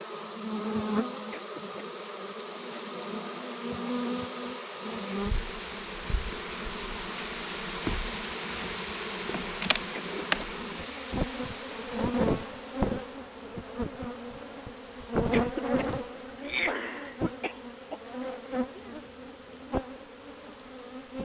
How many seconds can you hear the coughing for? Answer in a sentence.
The coughing can be heard for 4 seconds in total.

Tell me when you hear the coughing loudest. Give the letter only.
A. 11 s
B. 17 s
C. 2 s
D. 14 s
B.